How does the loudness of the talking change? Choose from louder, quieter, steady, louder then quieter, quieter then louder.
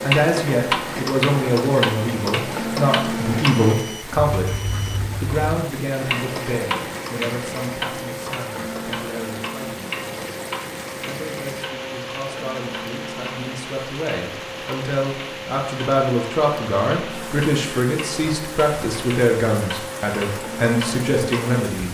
quieter then louder.